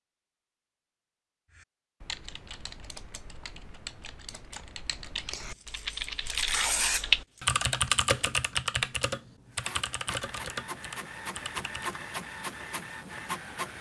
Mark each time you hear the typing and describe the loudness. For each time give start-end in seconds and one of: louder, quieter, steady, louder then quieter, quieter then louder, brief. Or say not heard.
1.5-11.9 louder then quieter.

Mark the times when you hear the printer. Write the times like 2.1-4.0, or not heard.
9.5-13.7.